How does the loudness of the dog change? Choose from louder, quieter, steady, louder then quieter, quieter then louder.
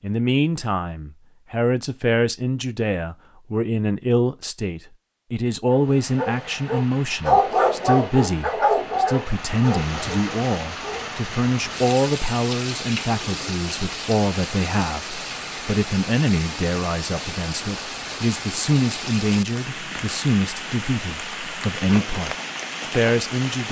louder then quieter.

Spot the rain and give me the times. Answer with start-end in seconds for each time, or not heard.
5.7-23.6.